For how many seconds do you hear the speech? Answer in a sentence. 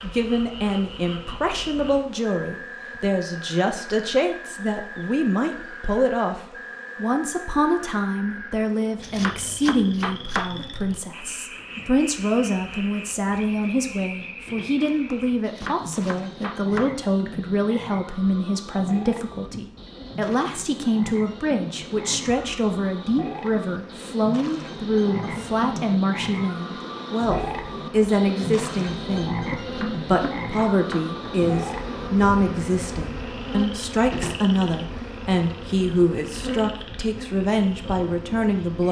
You can hear the speech for 39 seconds altogether.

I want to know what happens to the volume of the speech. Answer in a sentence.
The loudness of the speech stays about the same.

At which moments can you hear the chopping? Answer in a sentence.
The chopping can be heard from 9.0 to 10.5 s, from 15.4 to 16.9 s and from 29.6 to 31.1 s.